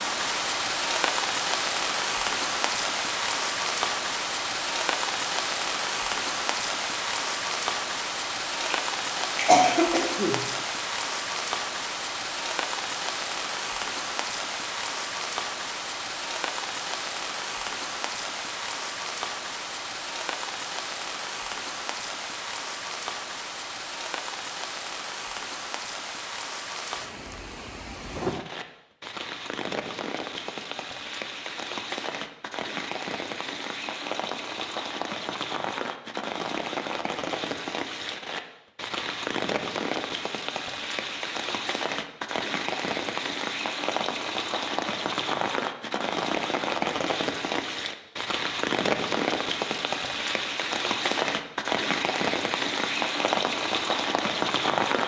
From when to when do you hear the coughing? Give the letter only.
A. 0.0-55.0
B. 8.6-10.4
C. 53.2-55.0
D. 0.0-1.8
B.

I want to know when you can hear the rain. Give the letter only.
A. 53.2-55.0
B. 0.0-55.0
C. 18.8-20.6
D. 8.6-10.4
B.